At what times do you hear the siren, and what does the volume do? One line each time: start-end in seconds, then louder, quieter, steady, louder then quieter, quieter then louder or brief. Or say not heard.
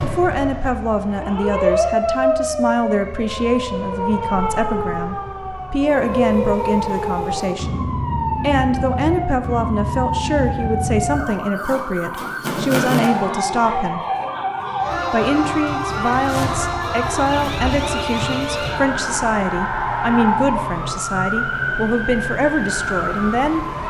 0.0-23.8 steady.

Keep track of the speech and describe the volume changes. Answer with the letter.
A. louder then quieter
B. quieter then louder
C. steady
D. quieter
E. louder
C.